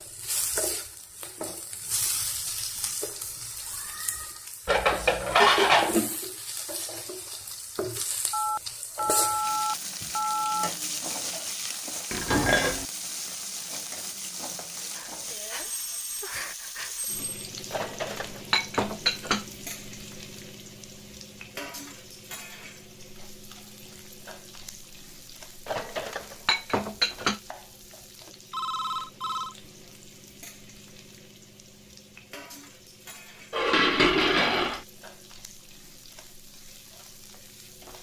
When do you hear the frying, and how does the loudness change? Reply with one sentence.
The frying can be heard from 0.0 to 37.9 s, getting quieter.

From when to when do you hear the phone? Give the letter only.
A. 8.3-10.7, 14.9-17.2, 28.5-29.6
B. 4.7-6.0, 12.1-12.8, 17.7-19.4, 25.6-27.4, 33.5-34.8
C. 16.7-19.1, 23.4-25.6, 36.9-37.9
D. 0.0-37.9
A.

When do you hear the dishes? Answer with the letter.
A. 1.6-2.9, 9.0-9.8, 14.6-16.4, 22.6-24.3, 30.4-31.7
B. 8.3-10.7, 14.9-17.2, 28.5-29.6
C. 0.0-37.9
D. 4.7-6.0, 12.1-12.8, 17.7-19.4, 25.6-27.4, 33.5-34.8
D.